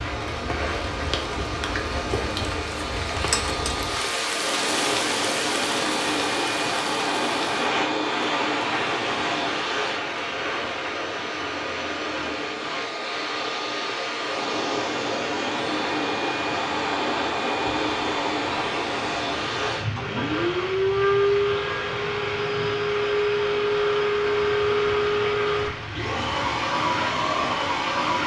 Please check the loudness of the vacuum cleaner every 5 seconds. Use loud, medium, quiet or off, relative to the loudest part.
medium, loud, medium, loud, loud, loud.